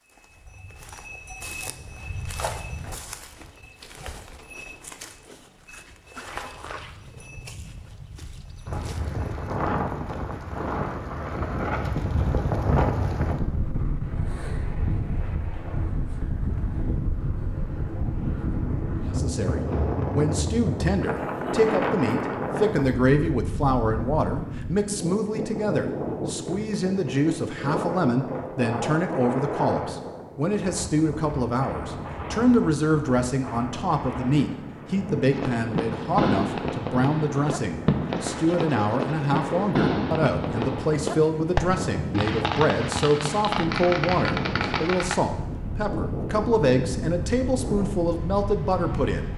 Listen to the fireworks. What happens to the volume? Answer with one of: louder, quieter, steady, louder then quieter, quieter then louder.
steady.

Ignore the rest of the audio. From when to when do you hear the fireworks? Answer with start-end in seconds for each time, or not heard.
35.3-45.1.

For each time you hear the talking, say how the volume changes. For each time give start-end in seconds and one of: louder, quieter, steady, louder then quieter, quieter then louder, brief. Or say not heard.
19.1-49.3 steady.